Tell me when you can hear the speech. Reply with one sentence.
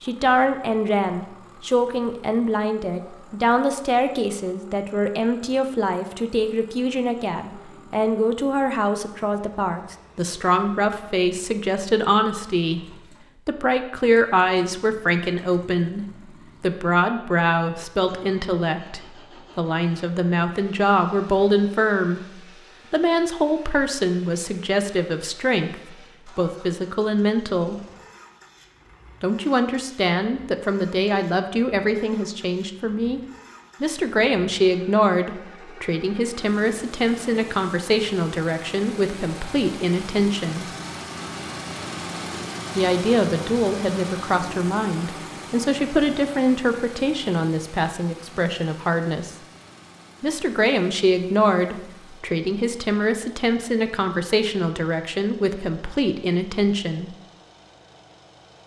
You can hear the speech from 0.0 to 27.8 s, from 29.2 to 33.2 s, from 33.8 to 40.6 s, from 42.8 to 49.4 s and from 50.2 to 57.1 s.